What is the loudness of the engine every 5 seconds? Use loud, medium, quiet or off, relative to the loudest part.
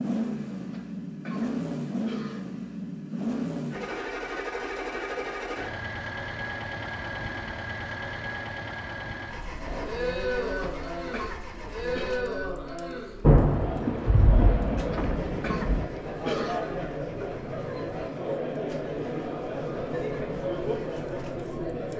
loud, loud, quiet, quiet, quiet.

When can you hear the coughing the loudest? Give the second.
16 s.